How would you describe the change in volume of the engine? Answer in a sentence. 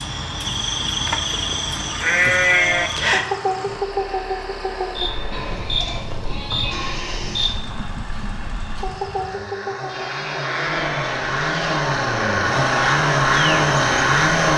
The volume of the engine goes up.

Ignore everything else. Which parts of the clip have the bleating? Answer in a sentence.
The bleating can be heard from 1.1 to 2.9 s, from 5.3 to 7.3 s and from 9.8 to 11.8 s.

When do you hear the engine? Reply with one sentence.
You can hear the engine from 0.0 to 14.5 s.